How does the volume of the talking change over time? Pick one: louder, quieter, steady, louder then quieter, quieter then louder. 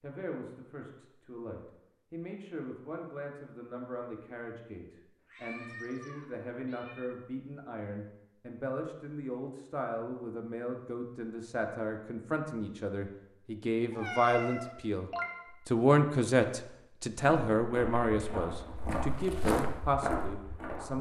louder.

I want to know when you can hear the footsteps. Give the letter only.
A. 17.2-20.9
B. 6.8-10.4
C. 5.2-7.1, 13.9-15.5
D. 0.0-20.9
A.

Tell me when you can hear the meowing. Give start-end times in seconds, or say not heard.
5.2-7.1, 13.9-15.5.